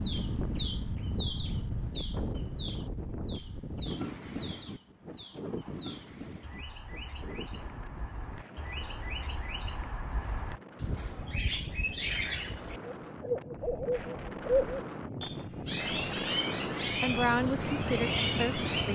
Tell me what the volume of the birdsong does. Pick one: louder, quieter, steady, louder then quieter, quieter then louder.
quieter then louder.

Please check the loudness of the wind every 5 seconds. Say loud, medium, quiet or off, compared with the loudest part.
loud, medium, medium, loud.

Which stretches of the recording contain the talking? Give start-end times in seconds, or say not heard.
17.0-18.9.